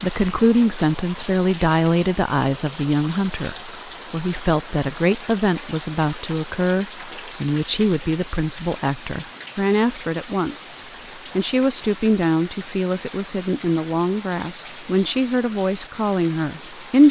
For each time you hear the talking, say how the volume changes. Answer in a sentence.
You can hear the talking from 0.0 to 17.0 s, at a steady volume.